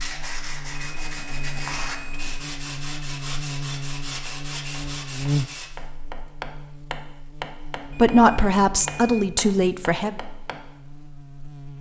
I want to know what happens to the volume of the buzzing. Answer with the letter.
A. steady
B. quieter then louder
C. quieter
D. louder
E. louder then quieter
E.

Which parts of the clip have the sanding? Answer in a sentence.
You can hear the sanding from 0.0 to 5.7 s.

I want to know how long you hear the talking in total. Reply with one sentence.
You can hear the talking for 2 seconds altogether.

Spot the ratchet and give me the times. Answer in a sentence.
The ratchet can't be heard in this clip.